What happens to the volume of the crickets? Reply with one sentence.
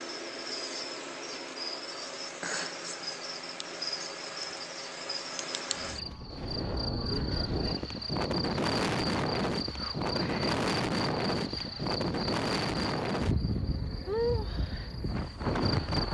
The volume of the crickets stays about the same.